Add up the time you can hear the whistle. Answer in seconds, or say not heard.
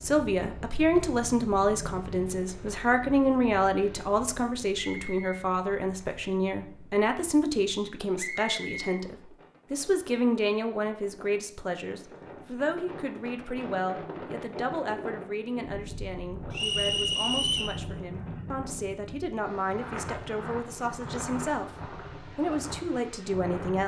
3 s.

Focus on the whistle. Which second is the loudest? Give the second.
17 s.